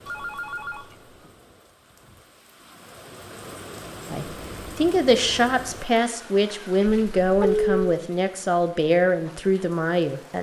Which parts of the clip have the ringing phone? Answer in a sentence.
You can hear the ringing phone from 0.1 to 1.1 s and from 6.8 to 7.8 s.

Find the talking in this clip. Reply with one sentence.
You can hear the talking from 4.1 to 10.3 s.